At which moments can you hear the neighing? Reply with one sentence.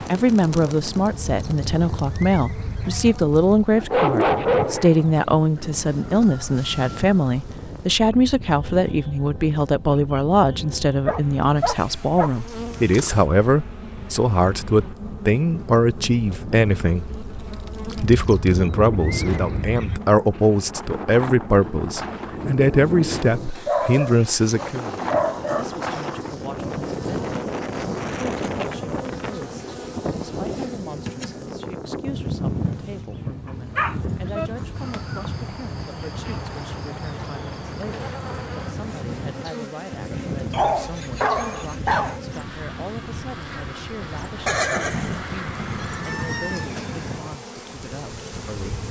The neighing can be heard from 1.1 to 3.1 s, from 18.2 to 20.0 s and from 44.5 to 46.9 s.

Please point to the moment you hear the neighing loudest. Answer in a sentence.
The volume of the neighing peaks at 45 seconds.